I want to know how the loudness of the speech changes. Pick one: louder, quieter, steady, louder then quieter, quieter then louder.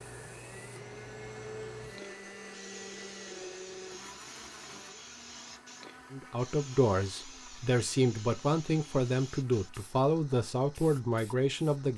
steady.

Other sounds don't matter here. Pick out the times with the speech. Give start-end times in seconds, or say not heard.
6.1-11.9.